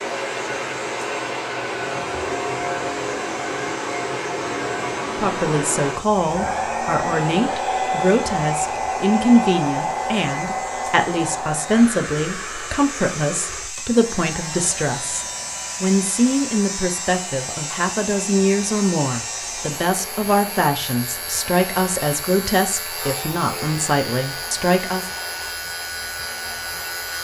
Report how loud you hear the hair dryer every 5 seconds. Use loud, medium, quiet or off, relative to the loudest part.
loud, loud, medium, quiet, quiet, quiet.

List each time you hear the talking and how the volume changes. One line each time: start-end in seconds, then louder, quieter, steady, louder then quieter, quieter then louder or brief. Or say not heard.
5.2-25.1 steady.